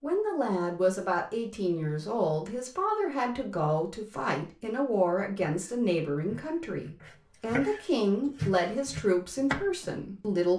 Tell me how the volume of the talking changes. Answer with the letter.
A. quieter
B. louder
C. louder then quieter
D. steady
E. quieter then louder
D.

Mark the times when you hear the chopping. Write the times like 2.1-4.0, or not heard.
5.5-10.3.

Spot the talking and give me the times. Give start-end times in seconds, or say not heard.
0.0-10.5.